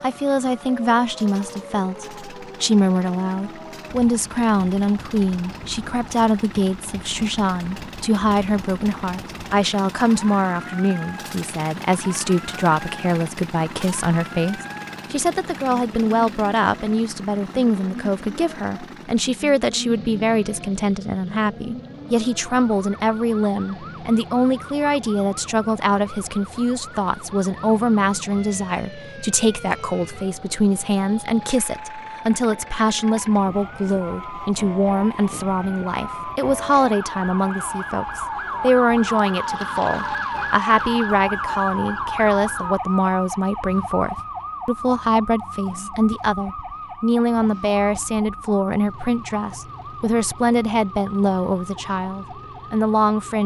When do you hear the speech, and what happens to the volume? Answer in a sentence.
You can hear the speech from 0.0 to 53.4 s, at a steady volume.